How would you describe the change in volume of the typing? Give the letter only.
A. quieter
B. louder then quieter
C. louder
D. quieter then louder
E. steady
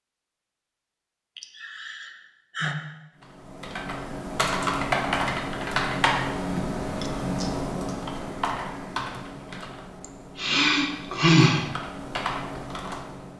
D.